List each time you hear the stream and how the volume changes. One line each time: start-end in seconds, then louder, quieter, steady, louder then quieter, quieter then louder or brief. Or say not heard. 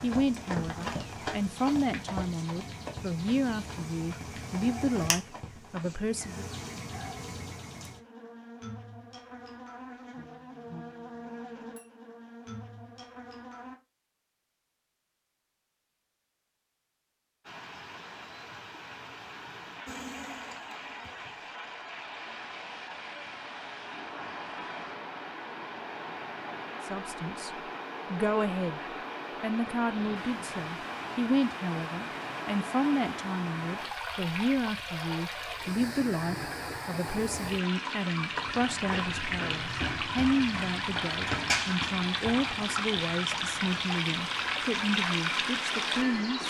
17.4-46.4 louder.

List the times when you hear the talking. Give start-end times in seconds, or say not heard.
0.0-6.5, 26.9-27.5, 28.1-28.8, 29.4-46.4.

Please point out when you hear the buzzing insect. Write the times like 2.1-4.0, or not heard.
0.0-13.8, 19.9-21.5.